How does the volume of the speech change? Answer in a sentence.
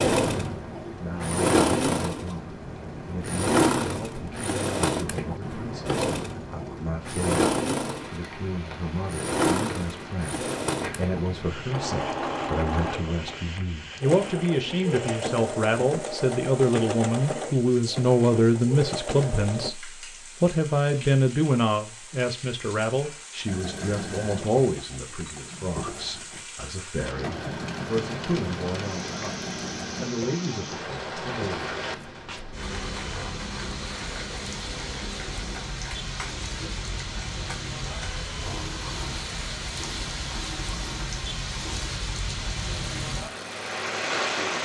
The loudness of the speech goes up, then down.